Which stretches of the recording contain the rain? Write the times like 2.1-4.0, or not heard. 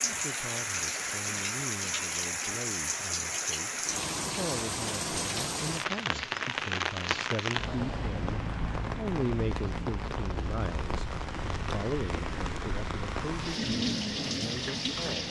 0.0-15.2.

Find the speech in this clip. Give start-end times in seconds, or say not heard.
0.1-15.2.